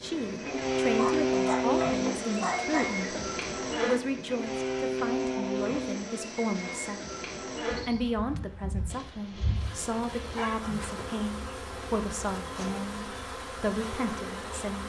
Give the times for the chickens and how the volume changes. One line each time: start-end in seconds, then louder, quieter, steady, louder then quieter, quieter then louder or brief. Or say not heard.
not heard.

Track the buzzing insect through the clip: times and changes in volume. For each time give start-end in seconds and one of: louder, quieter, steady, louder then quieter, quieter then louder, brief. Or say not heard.
0.0-14.8 quieter.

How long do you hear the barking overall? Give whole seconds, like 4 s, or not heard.
4 s.